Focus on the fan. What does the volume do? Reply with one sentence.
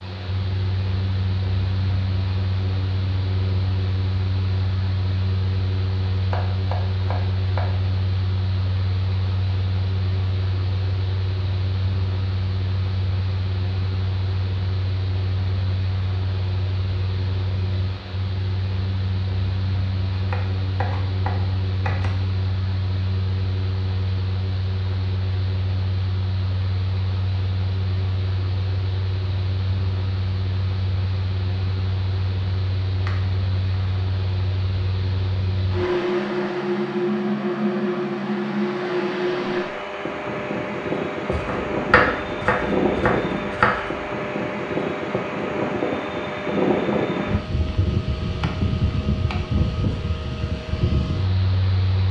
The volume of the fan goes up.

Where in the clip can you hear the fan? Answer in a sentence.
You can hear the fan from 0.0 to 52.0 s.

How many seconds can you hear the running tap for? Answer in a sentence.
The running tap can't be heard in this clip.